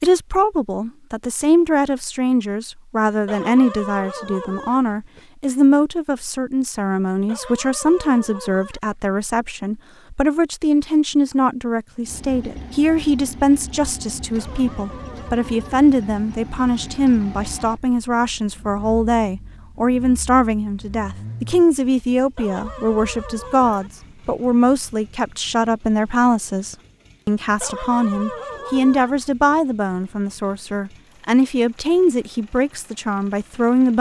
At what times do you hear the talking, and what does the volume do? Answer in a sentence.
The talking can be heard from 0.0 to 33.9 s, at a steady volume.